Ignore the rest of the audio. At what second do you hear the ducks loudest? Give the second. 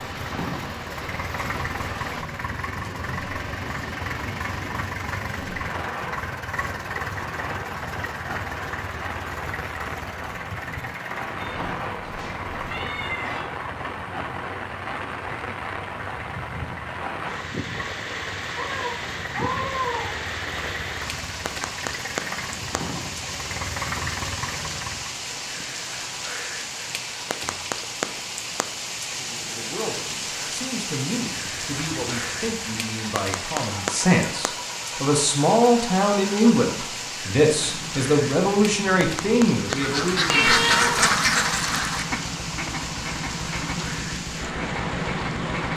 41 s.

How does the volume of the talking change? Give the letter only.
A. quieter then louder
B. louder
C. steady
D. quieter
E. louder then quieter
B.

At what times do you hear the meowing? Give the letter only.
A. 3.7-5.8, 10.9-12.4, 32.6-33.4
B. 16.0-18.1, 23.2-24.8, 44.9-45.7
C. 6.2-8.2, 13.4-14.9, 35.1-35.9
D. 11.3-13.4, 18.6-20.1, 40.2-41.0
D.